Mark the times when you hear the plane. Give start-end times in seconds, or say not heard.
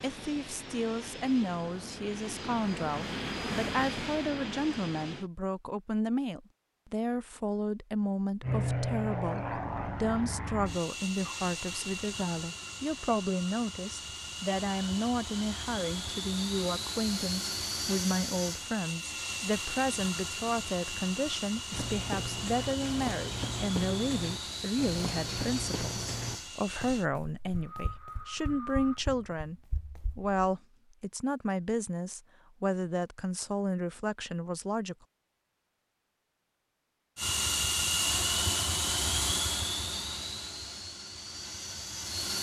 0.0-5.3, 8.4-27.1, 37.1-42.3.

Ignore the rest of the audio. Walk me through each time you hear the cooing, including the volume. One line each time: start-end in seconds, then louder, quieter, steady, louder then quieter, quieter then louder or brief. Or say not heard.
not heard.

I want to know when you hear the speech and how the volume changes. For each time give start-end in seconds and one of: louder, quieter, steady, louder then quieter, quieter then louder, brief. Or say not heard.
0.0-35.0 steady.